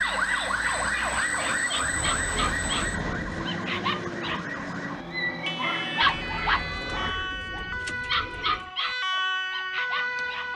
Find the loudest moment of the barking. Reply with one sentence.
The loudest moment of the barking is at 6 seconds.